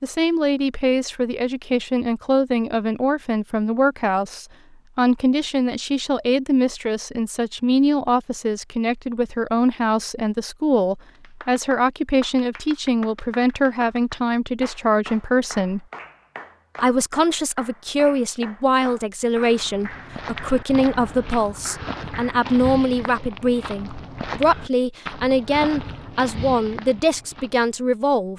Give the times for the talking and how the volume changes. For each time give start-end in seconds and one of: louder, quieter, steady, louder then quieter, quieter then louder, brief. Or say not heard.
0.0-15.8 steady
16.8-28.3 steady.